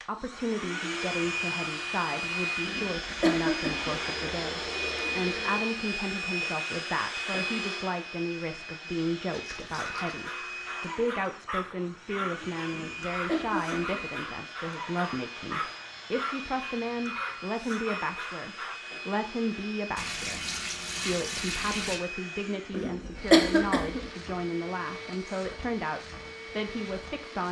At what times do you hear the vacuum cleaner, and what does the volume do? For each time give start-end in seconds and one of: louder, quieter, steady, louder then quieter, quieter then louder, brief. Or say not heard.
0.0-27.4 quieter.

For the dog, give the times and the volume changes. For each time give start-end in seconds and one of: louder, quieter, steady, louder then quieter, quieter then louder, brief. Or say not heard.
9.7-18.8 steady.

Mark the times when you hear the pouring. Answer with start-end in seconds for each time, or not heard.
3.9-5.7, 9.3-10.2, 19.9-22.0.